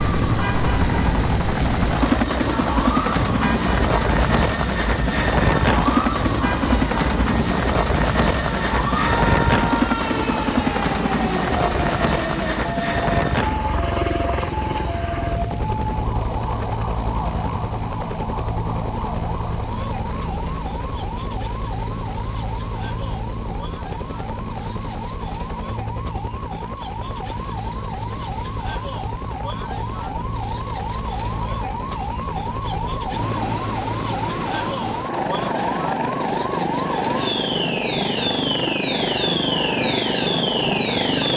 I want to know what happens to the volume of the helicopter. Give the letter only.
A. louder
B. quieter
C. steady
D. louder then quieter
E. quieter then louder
E.